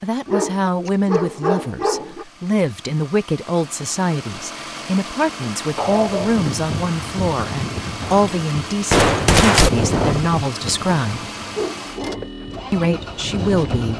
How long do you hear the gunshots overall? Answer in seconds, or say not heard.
2 s.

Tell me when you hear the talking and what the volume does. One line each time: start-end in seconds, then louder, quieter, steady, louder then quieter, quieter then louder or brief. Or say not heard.
0.0-11.2 steady
12.7-13.9 brief.